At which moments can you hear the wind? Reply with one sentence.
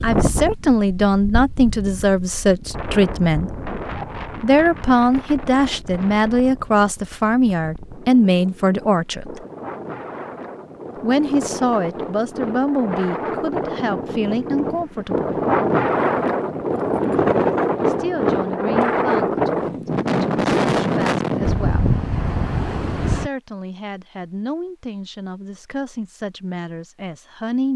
The wind can be heard from 0.0 to 23.3 s.